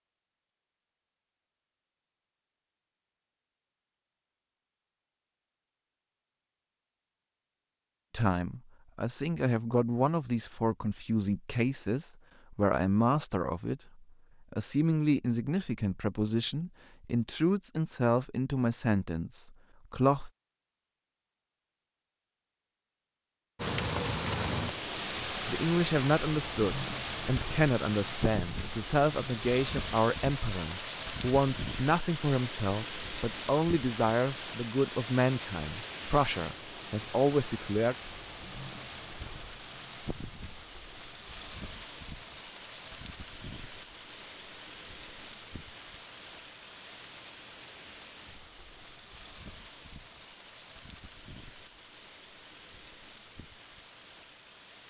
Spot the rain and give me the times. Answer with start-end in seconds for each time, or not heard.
23.6-54.8.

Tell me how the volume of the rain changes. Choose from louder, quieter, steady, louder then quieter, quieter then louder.
quieter.